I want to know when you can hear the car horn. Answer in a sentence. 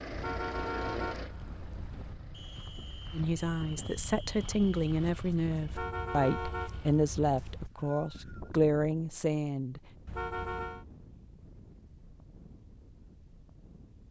The car horn can be heard from 0.1 to 2.1 s, from 5.7 to 7.7 s and from 10.1 to 10.8 s.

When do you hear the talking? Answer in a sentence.
You can hear the talking from 3.1 to 9.8 s.